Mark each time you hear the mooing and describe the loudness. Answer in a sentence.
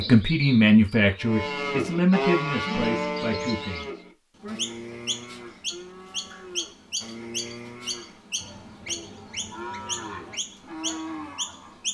The mooing can be heard from 1.1 to 11.8 s, getting quieter then louder.